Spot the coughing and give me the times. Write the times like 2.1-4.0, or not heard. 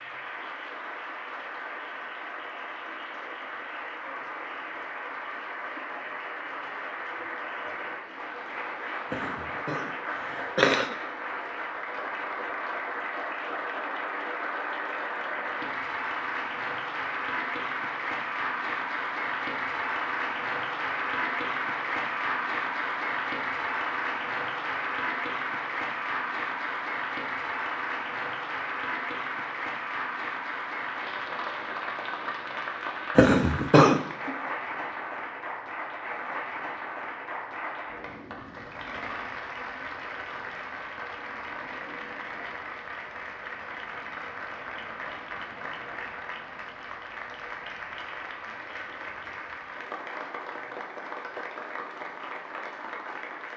9.1-10.9, 33.1-34.0.